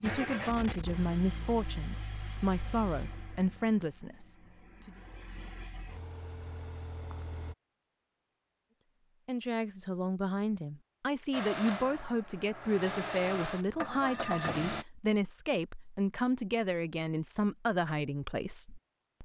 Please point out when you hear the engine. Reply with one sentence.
You can hear the engine from 0.0 to 7.5 s and from 11.3 to 14.8 s.